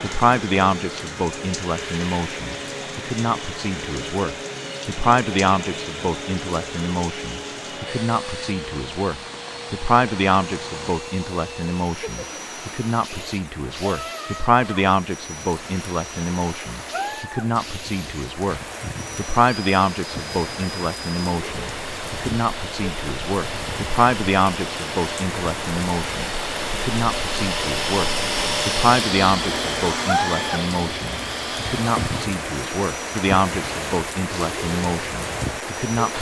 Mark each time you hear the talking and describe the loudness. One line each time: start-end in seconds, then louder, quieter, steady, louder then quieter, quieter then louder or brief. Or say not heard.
0.0-36.1 steady.